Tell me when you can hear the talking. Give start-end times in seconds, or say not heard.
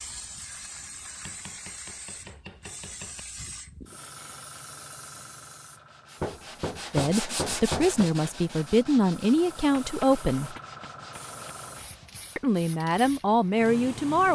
6.9-10.6, 12.3-14.3.